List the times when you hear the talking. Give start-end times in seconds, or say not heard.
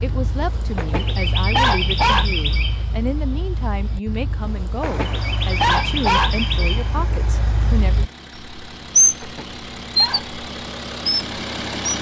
0.0-8.1.